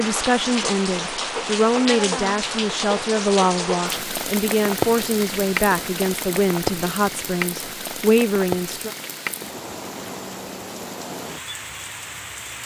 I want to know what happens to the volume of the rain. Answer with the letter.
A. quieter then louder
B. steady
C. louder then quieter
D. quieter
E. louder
D.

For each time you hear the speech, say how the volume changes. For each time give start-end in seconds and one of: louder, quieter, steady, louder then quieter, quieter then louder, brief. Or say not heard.
0.0-8.9 steady.